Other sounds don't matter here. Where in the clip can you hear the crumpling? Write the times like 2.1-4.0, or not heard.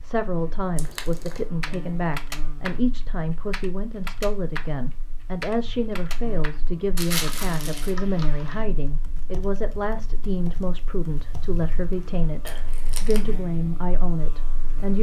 0.8-1.4, 7.0-8.0, 12.4-13.2.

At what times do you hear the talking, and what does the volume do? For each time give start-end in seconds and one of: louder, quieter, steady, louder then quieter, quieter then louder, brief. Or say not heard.
0.0-14.9 steady.